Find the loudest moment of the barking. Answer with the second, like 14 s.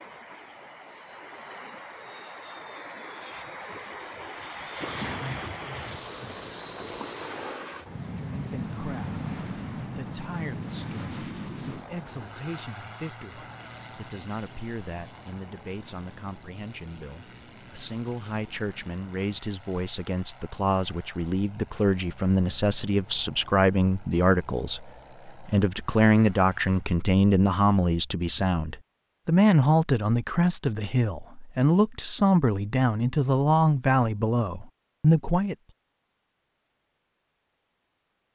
5 s.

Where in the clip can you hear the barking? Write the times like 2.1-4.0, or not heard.
4.8-7.1.